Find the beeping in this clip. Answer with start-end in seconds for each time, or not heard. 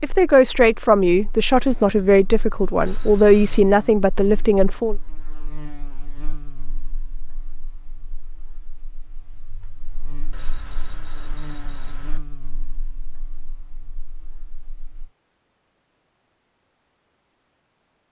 2.8-3.6, 10.3-12.2.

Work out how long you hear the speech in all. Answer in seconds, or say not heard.
5 s.